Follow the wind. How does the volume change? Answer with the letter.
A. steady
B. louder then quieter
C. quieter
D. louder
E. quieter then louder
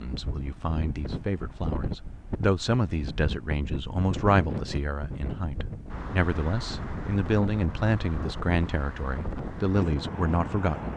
A.